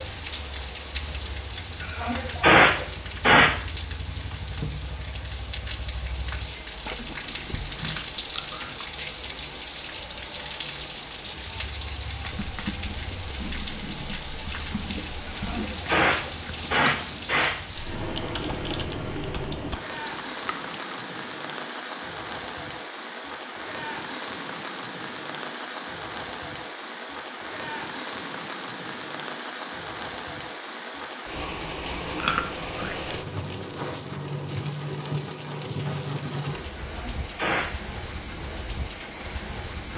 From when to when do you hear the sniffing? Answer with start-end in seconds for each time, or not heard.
1.8-3.5, 15.2-17.6, 36.8-37.6.